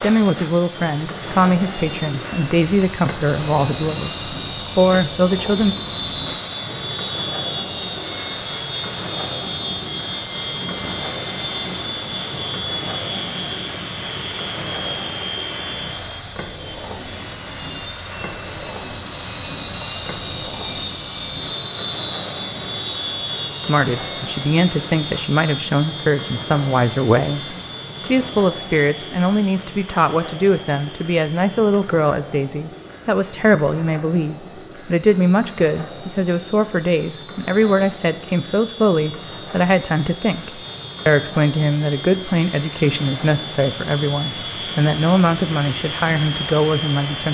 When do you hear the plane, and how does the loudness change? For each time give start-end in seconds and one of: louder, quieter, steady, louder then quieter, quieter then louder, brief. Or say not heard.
0.0-47.2 quieter then louder.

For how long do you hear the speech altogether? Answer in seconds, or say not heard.
29 s.